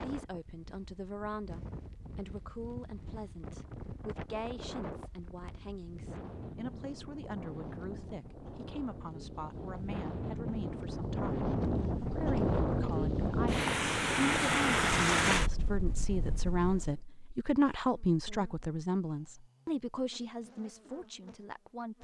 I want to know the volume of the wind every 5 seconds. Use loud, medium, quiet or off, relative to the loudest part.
quiet, quiet, loud, loud, off.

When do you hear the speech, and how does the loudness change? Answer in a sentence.
You can hear the speech from 0.0 to 21.9 s, getting louder.